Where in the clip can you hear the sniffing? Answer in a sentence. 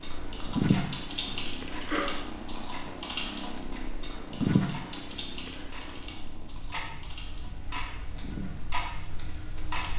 You can hear the sniffing from 1.2 to 2.0 s.